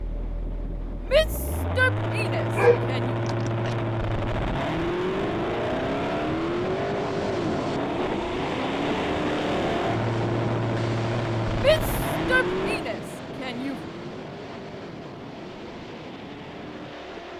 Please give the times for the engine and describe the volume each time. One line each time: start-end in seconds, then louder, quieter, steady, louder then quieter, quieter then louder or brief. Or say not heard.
0.0-17.3 quieter.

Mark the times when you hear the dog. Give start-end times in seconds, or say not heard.
2.5-3.8.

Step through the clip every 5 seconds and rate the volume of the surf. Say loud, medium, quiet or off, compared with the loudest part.
medium, loud, loud, medium.